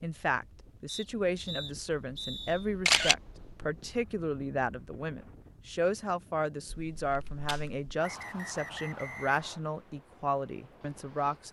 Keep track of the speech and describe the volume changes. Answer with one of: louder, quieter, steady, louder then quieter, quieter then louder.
steady.